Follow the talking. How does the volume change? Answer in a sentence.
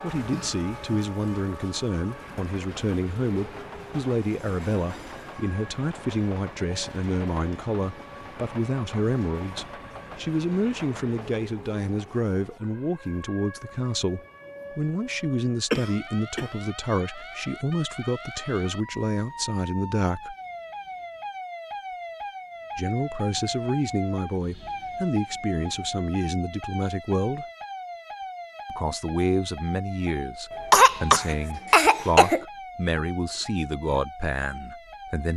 The loudness of the talking stays about the same.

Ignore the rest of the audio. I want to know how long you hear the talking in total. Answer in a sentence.
You can hear the talking for 32 seconds altogether.